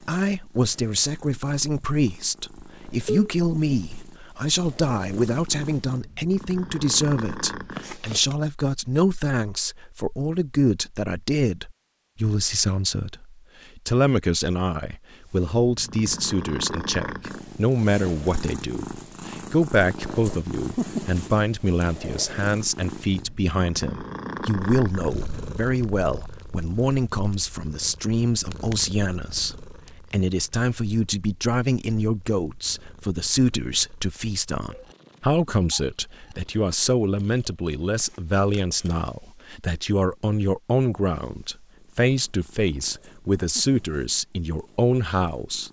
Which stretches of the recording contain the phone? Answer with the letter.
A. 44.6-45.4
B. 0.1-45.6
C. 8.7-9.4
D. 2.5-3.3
D.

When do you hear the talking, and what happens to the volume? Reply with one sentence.
You can hear the talking from 0.1 to 45.6 s, at a steady volume.